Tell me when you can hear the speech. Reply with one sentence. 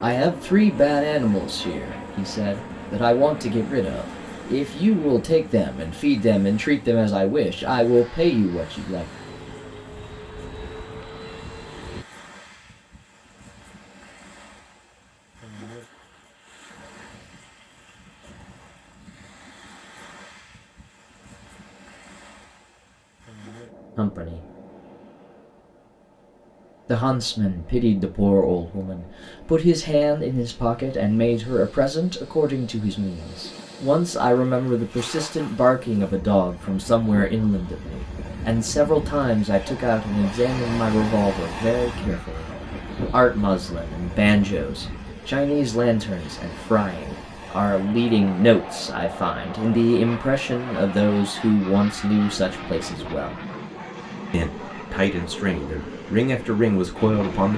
The speech can be heard from 0.0 to 9.1 s, from 23.9 to 24.4 s, from 26.9 to 42.5 s, from 43.1 to 53.4 s and from 54.3 to 57.5 s.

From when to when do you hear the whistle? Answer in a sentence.
The whistle can't be heard in this clip.